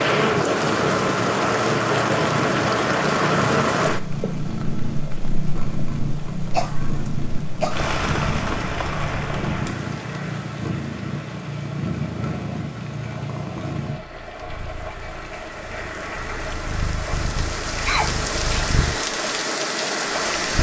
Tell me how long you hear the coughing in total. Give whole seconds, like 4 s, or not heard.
2 s.